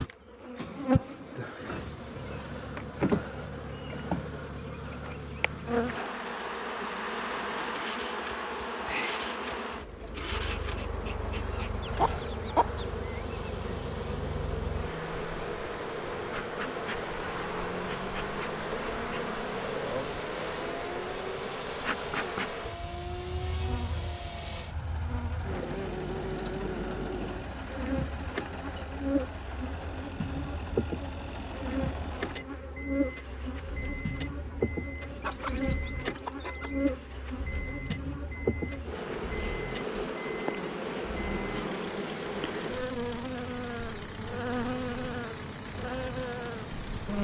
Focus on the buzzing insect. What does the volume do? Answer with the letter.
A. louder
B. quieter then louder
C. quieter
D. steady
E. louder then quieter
D.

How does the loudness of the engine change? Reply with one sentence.
The loudness of the engine stays about the same.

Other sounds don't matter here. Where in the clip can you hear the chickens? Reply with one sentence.
You can hear the chickens from 11.8 to 12.8 s and from 35.2 to 36.8 s.